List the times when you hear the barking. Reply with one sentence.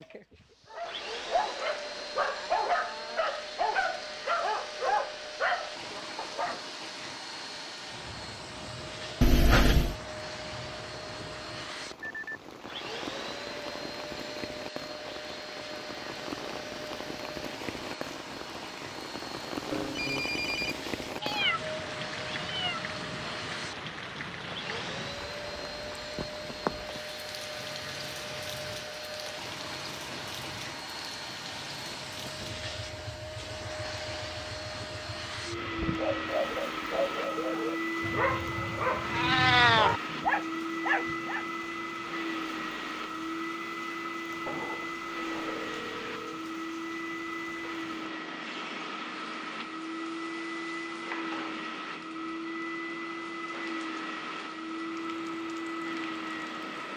You can hear the barking from 0.7 to 6.6 s and from 35.6 to 41.5 s.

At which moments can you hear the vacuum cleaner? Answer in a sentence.
The vacuum cleaner can be heard from 0.0 to 56.9 s.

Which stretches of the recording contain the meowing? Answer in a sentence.
You can hear the meowing from 9.2 to 9.9 s, from 21.2 to 22.9 s and from 39.1 to 39.9 s.